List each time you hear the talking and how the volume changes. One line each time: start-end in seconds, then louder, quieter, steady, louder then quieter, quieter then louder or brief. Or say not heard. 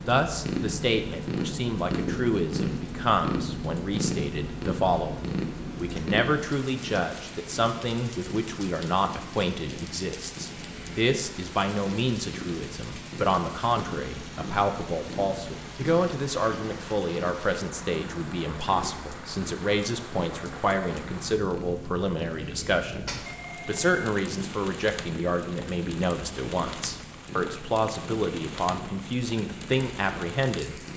0.1-30.8 steady.